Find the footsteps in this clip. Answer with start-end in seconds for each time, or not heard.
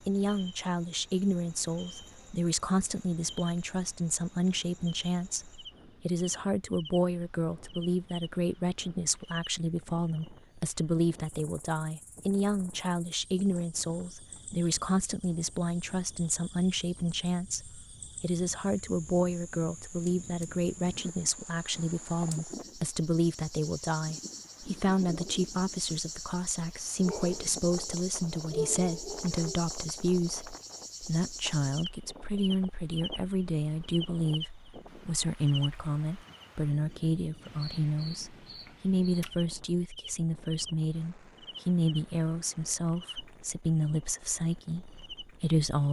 not heard.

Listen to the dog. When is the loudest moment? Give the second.
29 s.